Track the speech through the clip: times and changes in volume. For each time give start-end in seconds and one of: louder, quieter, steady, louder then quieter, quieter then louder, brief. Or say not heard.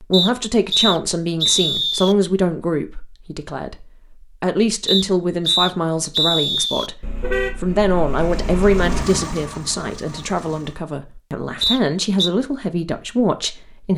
0.0-13.9 steady.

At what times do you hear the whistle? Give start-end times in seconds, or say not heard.
0.1-2.1, 4.8-6.9, 11.6-12.3.